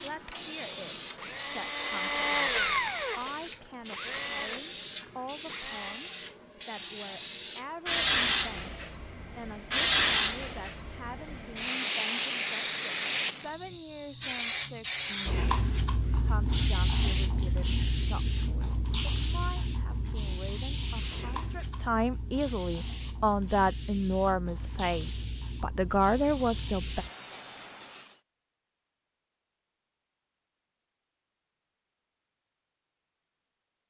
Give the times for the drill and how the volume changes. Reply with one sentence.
The drill can be heard from 0.2 to 6.0 s, getting louder then quieter.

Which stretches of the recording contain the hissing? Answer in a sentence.
You can hear the hissing from 0.0 to 28.1 s.